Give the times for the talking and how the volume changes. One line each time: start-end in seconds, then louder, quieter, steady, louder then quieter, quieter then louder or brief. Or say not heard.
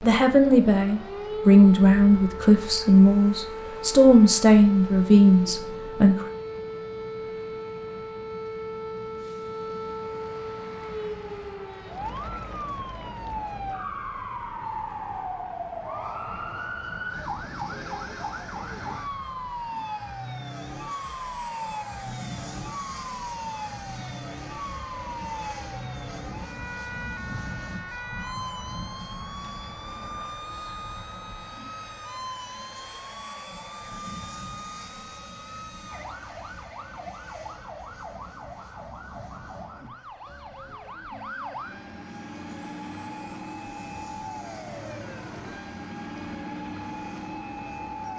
0.0-6.2 steady.